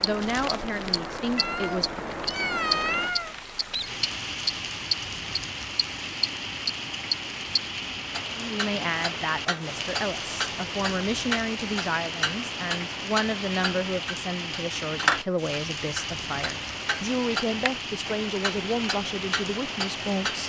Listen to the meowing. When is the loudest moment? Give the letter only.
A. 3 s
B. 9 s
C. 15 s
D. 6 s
A.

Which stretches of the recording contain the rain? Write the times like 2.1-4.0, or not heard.
0.0-20.4.